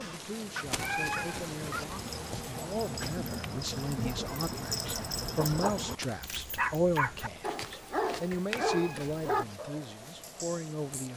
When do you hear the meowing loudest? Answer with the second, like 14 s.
1 s.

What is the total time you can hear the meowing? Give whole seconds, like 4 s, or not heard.
2 s.